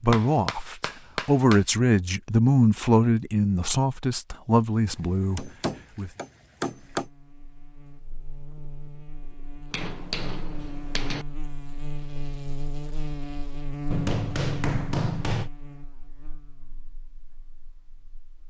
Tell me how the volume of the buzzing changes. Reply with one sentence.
The volume of the buzzing goes up, then down.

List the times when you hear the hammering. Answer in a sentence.
The hammering can be heard from 0.1 to 1.6 s, from 5.0 to 7.0 s, from 9.7 to 11.2 s and from 13.9 to 15.5 s.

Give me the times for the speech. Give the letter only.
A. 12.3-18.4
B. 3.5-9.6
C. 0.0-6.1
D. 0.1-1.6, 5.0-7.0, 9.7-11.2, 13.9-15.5
C.